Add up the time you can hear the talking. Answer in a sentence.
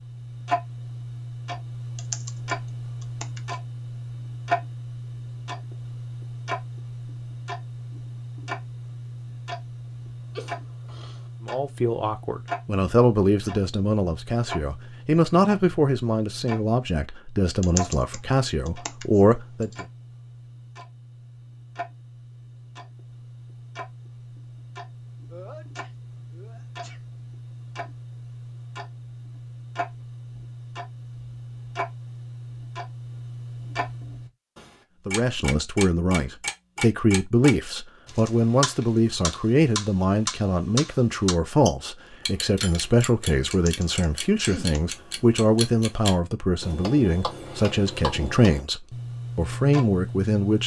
You can hear the talking for 24 seconds altogether.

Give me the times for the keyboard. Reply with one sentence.
The keyboard can be heard from 1.9 to 3.5 s, from 17.6 to 19.8 s and from 43.5 to 45.0 s.